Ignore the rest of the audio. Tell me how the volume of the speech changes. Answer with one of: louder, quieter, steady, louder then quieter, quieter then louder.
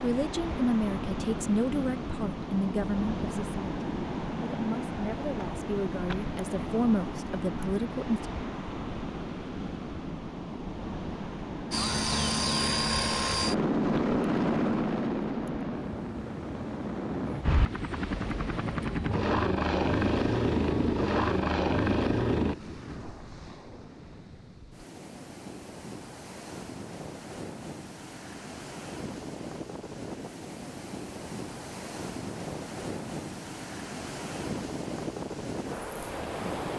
quieter then louder.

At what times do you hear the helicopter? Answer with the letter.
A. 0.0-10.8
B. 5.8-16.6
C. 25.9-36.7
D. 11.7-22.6
D.